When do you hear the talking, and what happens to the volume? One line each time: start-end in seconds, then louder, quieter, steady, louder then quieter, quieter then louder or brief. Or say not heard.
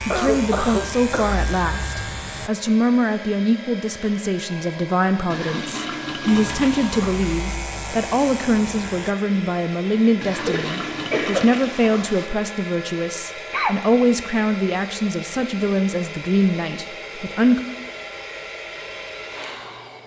0.1-17.6 steady.